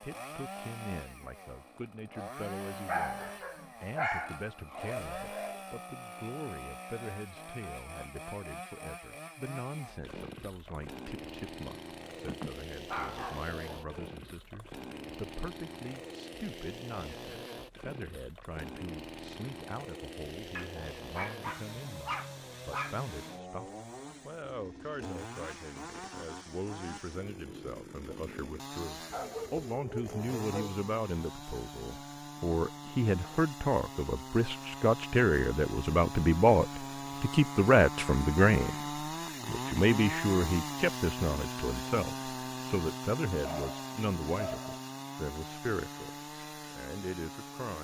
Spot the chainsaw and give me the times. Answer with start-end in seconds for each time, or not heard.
0.0-47.7.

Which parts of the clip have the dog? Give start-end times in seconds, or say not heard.
2.9-5.6, 12.2-14.2, 20.6-23.0, 29.1-30.8, 43.4-44.8.